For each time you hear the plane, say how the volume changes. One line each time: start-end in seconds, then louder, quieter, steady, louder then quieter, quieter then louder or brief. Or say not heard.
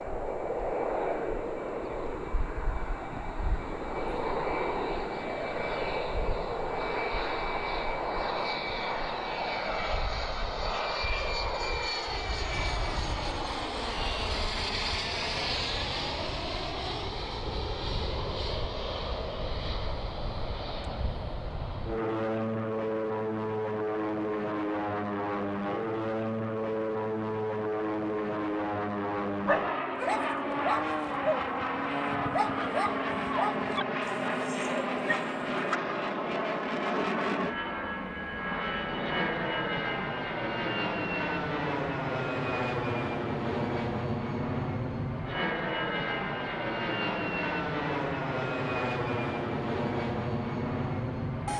0.0-51.5 steady.